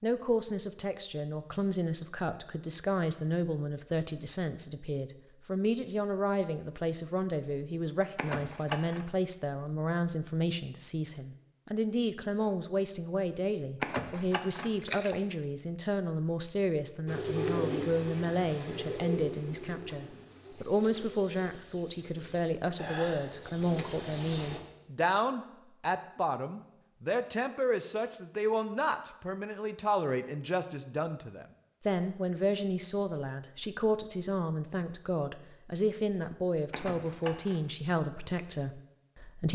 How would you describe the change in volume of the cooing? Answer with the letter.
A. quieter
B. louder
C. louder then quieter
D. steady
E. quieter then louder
E.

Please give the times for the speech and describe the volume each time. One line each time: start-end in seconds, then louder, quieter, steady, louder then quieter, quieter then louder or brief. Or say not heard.
0.0-39.5 steady.